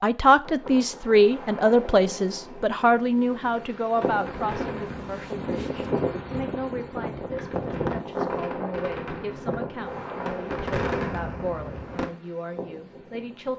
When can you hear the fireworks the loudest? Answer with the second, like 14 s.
11 s.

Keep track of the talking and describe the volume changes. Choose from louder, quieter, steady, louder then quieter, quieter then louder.
quieter.